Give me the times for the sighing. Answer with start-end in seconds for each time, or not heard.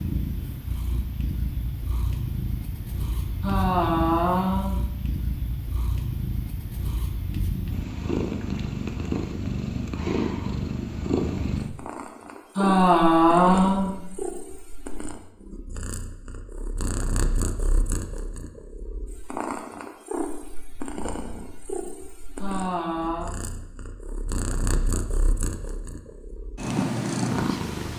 3.4-4.8, 12.6-13.9, 22.4-23.3.